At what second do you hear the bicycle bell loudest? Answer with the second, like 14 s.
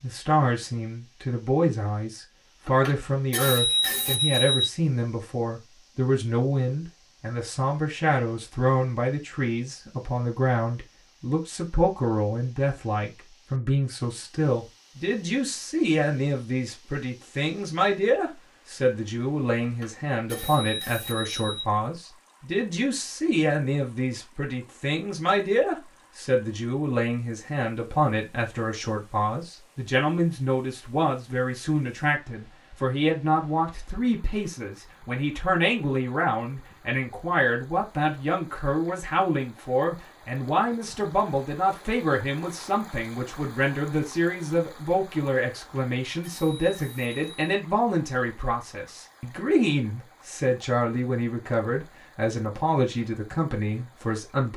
4 s.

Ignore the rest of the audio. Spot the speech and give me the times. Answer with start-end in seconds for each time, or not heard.
0.0-54.5.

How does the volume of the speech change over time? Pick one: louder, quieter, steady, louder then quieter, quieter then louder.
steady.